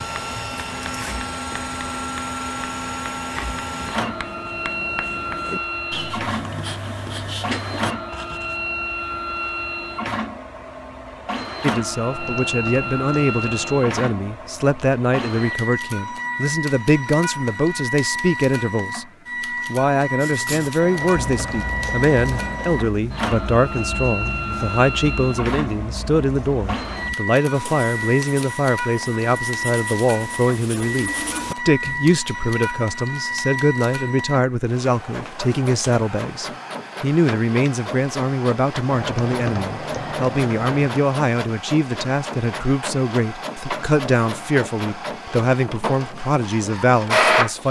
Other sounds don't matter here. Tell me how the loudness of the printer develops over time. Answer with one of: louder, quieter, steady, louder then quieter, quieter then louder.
steady.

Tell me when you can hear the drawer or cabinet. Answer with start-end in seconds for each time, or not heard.
not heard.